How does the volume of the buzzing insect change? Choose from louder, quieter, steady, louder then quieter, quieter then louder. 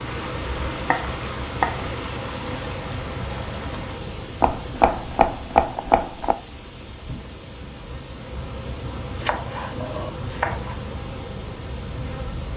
quieter then louder.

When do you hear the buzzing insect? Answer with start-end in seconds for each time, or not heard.
0.0-12.5.